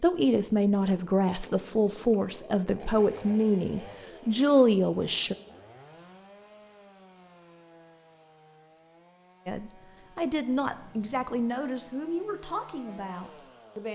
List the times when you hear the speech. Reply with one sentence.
The speech can be heard from 0.0 to 5.3 s and from 9.4 to 13.8 s.